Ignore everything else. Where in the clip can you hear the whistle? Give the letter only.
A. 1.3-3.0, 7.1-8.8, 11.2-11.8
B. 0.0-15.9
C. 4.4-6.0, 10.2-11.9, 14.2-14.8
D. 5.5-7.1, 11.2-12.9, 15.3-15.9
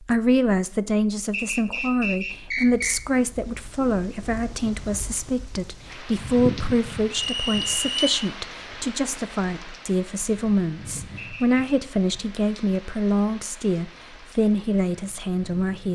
A.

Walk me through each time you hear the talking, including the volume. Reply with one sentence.
You can hear the talking from 0.0 to 15.9 s, at a steady volume.